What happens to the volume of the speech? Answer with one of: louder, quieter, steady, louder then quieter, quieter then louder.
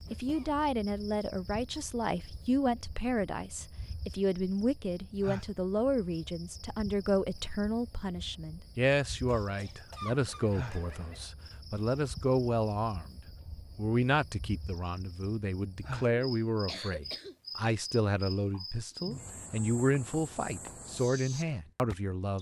steady.